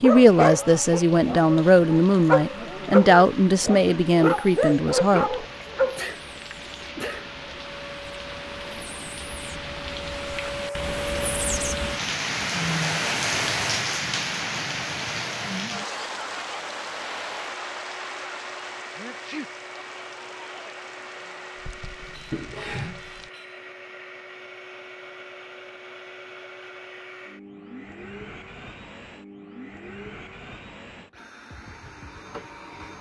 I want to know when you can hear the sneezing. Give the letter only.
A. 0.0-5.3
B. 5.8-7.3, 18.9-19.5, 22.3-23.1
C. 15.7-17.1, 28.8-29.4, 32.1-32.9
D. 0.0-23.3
B.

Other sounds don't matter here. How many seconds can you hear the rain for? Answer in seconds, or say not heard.
23 s.